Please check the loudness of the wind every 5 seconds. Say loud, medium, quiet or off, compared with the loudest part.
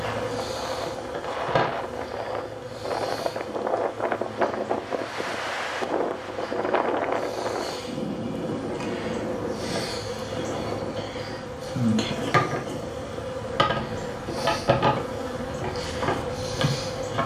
loud, loud, medium, medium.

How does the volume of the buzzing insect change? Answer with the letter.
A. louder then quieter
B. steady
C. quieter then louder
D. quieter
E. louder
C.